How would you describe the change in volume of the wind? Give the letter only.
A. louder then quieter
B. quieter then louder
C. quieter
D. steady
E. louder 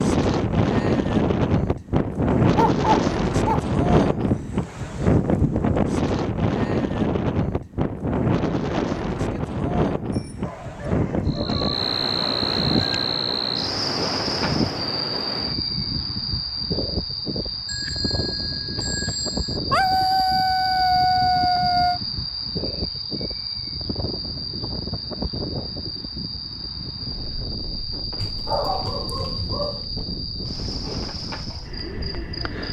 C.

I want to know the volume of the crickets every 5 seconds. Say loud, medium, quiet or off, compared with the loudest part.
off, off, loud, loud, loud, medium, medium.